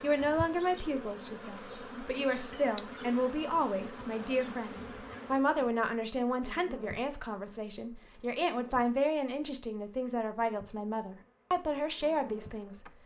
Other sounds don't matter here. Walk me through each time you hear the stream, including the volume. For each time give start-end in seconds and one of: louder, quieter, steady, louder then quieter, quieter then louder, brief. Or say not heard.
not heard.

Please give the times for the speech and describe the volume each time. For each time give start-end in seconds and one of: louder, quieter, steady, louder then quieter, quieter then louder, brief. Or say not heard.
0.0-12.8 steady.